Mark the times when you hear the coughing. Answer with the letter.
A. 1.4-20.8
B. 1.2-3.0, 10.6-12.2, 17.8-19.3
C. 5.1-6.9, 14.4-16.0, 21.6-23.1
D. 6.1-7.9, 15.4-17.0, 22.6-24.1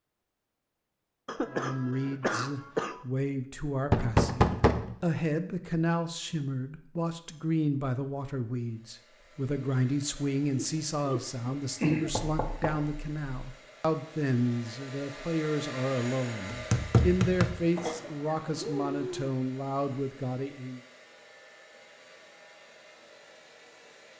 B.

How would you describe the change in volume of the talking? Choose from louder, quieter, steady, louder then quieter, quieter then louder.
steady.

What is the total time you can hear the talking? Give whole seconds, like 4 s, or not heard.
19 s.